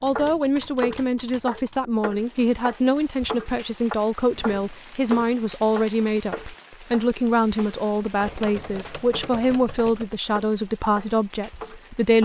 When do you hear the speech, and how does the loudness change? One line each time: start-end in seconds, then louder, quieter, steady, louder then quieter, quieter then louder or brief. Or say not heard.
0.0-12.1 steady.